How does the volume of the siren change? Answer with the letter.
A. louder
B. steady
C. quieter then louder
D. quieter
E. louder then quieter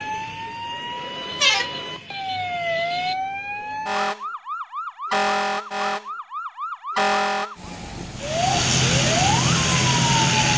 B.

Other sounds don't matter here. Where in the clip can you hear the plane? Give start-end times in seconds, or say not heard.
8.2-10.5.